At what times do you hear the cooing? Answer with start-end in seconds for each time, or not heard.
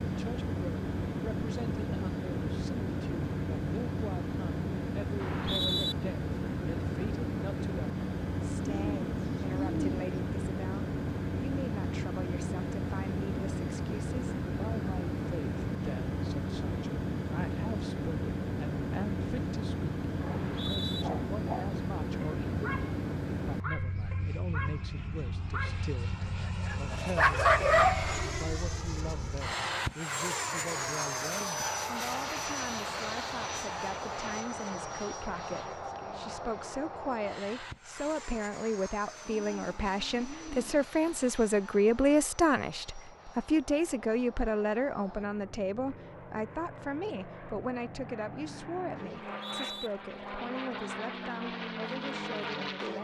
8.6-10.1, 39.2-40.9.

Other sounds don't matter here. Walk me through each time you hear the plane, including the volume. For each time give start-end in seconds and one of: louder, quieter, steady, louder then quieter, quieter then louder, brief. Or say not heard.
0.0-53.0 quieter.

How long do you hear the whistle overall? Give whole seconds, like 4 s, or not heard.
2 s.